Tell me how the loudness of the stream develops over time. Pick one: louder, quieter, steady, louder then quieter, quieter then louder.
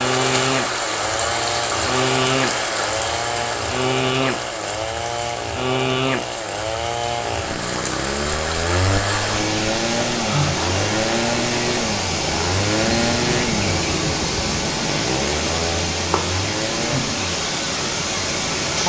quieter then louder.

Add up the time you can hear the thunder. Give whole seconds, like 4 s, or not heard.
2 s.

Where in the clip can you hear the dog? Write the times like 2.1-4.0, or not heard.
not heard.